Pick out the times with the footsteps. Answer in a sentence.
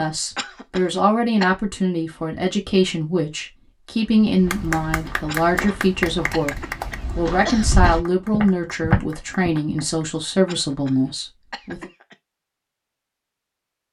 The footsteps can be heard from 4.0 to 9.5 s.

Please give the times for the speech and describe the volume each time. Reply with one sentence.
You can hear the speech from 0.0 to 11.9 s, at a steady volume.